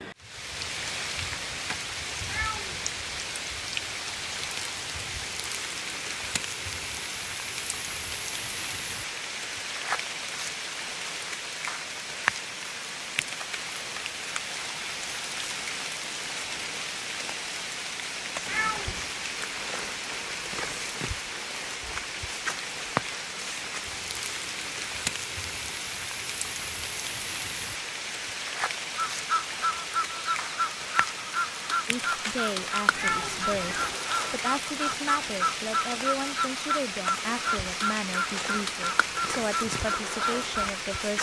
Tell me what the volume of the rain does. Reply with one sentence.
The volume of the rain stays about the same.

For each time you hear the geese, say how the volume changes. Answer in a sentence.
The geese can be heard from 28.9 to 40.8 s, at a steady volume.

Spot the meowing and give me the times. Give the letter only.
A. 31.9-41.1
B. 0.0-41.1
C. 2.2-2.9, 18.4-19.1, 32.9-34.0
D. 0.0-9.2
C.